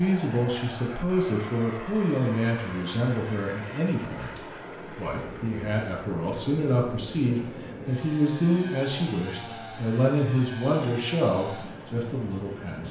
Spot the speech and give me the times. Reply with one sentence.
You can hear the speech from 0.0 to 12.8 s.